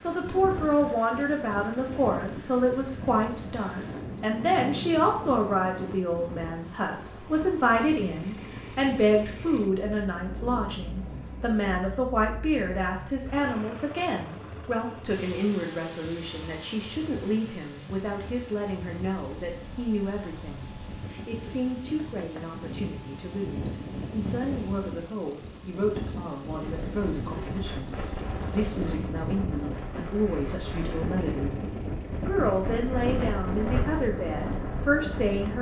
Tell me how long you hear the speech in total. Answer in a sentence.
You can hear the speech for 35 seconds altogether.